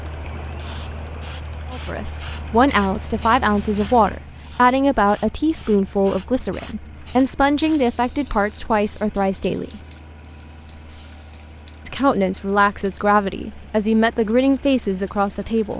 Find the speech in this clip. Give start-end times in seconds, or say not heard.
1.7-9.8, 11.8-15.7.